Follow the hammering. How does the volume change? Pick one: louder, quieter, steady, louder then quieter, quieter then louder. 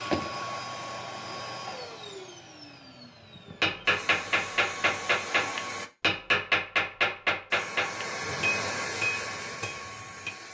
quieter.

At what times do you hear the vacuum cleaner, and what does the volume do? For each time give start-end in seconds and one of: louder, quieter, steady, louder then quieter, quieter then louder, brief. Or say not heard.
0.0-5.9 quieter then louder
7.5-10.4 brief.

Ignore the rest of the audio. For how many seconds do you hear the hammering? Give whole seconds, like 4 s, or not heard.
7 s.